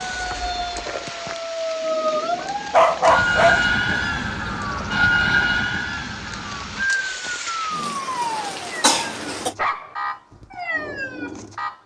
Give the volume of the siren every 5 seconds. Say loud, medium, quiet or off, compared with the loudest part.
loud, loud, medium.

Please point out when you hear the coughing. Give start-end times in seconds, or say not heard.
8.8-9.6.